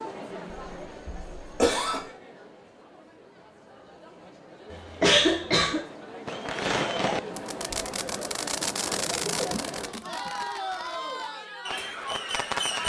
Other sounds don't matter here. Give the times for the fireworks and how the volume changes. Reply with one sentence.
You can hear the fireworks from 6.2 to 12.8 s, getting quieter then louder.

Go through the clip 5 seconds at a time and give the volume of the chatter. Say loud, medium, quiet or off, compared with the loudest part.
medium, loud, loud.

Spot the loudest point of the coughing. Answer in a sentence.
The volume of the coughing peaks at 5 seconds.